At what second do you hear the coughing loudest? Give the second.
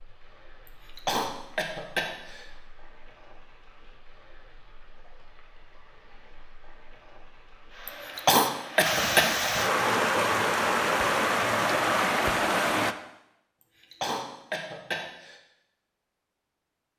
8 s.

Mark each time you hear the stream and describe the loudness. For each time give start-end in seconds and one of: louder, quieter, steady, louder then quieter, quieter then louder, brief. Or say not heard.
0.0-12.9 louder.